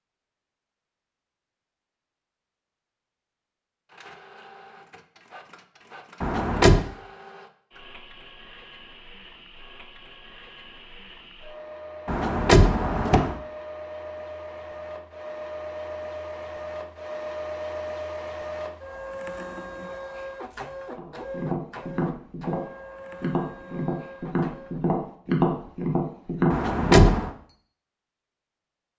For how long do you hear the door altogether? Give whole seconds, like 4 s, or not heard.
3 s.